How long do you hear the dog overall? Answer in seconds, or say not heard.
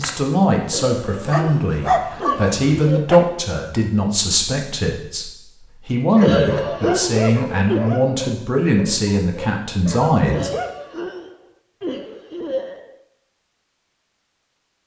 8 s.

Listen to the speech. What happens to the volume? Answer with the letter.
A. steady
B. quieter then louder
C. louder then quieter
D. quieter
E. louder
A.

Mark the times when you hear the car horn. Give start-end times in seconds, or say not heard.
not heard.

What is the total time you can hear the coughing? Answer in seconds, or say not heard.
7 s.